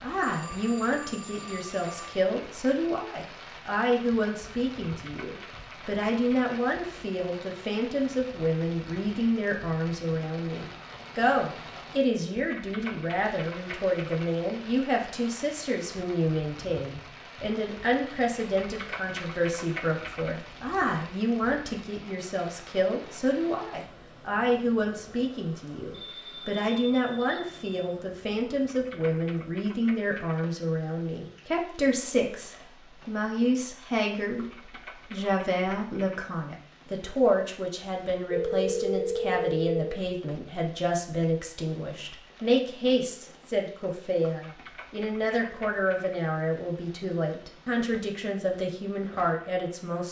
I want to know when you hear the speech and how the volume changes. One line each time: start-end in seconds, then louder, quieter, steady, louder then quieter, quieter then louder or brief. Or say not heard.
0.0-34.5 steady
35.1-50.0 steady.